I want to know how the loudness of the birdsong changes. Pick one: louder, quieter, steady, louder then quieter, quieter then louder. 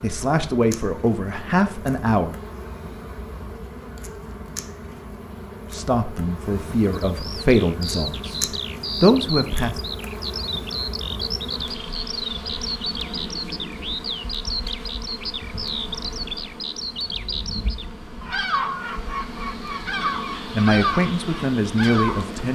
steady.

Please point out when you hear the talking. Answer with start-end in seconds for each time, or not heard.
0.0-2.4, 5.7-8.4, 9.0-9.8, 20.4-22.4.